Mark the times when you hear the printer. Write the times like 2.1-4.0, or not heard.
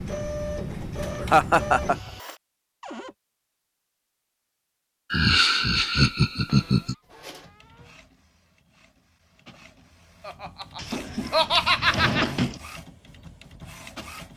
0.0-2.4, 7.0-14.3.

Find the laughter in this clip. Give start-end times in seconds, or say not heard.
1.2-1.9, 5.1-7.0, 10.2-12.2.